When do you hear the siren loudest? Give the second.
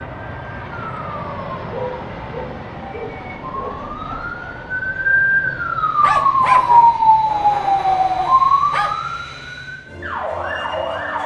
7 s.